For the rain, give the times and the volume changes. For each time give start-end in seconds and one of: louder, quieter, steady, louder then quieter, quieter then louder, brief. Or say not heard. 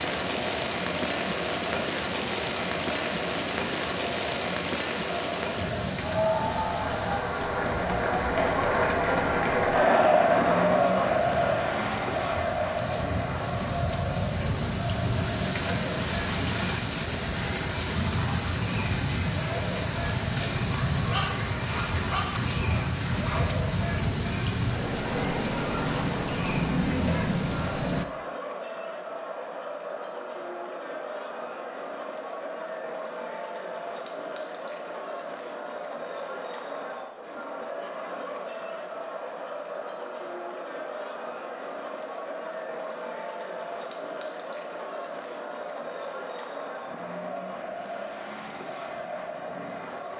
0.0-28.1 quieter then louder.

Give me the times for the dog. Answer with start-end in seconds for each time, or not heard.
20.7-23.6.